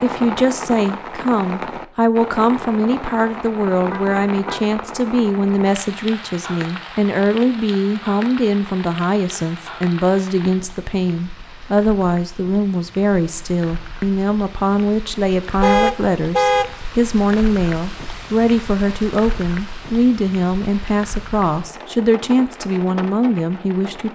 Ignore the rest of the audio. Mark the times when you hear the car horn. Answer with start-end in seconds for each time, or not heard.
3.7-4.7, 15.6-16.7.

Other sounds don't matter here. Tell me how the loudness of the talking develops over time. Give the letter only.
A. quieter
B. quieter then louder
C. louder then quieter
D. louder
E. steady
E.